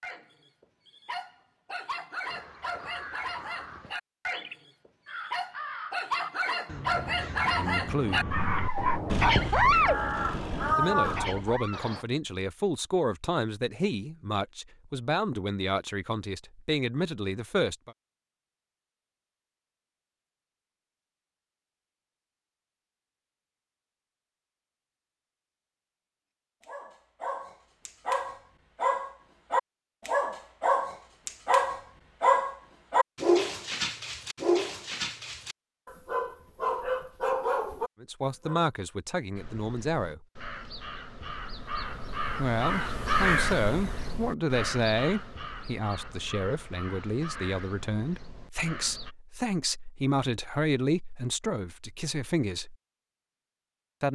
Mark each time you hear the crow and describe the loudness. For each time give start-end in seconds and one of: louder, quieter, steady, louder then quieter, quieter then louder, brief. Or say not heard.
2.2-12.1 louder
39.4-49.1 louder then quieter.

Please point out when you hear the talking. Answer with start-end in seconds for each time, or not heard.
7.5-8.3, 10.8-17.9, 38.0-40.2, 42.4-52.8.